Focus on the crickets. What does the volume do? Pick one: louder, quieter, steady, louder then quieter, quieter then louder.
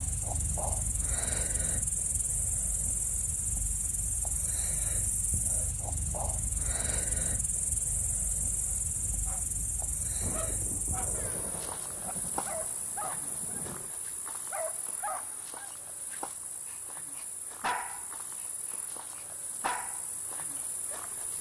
quieter.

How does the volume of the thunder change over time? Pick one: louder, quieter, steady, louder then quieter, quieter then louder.
louder then quieter.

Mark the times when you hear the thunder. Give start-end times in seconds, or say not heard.
8.9-13.9.